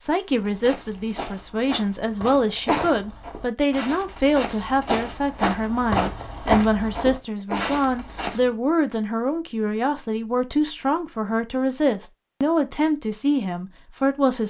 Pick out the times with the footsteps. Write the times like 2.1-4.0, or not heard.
0.2-8.5.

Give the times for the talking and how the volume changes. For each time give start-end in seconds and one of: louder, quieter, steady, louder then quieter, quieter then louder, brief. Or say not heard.
0.0-14.4 steady.